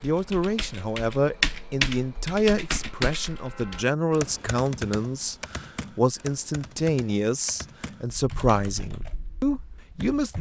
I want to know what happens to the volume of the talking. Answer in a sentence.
The volume of the talking stays about the same.